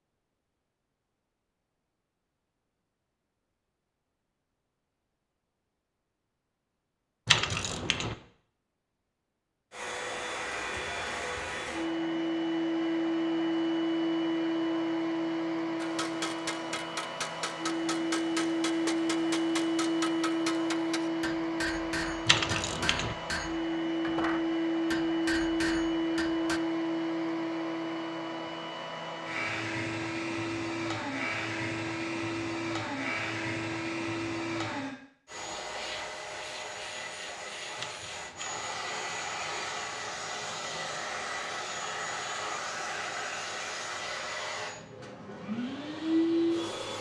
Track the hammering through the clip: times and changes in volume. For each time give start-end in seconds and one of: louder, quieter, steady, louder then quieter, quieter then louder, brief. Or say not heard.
15.8-26.6 steady.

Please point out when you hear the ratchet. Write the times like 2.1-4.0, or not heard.
7.2-8.2, 22.2-23.1, 37.8-38.6.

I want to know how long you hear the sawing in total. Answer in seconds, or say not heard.
not heard.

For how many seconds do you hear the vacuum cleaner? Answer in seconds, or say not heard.
37 s.